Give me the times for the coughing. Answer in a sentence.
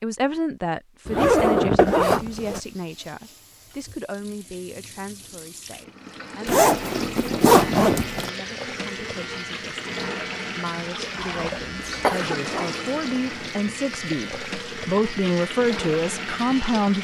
The coughing can be heard from 11.2 to 12.4 s.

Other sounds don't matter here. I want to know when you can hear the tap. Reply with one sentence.
You can hear the tap from 2.0 to 16.9 s.